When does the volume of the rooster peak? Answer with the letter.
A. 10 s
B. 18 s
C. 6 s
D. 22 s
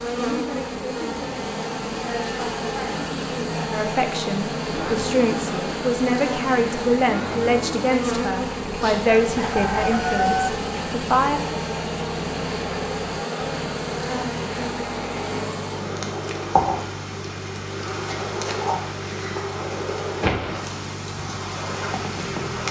A.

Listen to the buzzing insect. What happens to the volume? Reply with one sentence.
The loudness of the buzzing insect stays about the same.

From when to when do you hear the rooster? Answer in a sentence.
You can hear the rooster from 8.8 to 10.5 s.